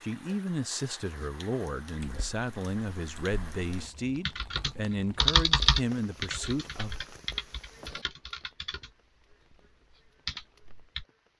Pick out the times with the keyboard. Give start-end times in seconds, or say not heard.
1.9-11.1.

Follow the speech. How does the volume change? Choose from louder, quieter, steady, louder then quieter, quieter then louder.
steady.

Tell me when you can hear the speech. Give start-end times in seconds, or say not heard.
0.0-7.0.